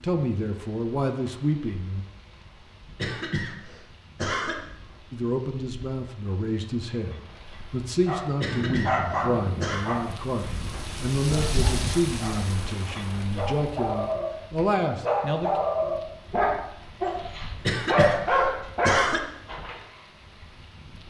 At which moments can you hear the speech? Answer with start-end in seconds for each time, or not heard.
0.0-2.0, 5.1-15.6.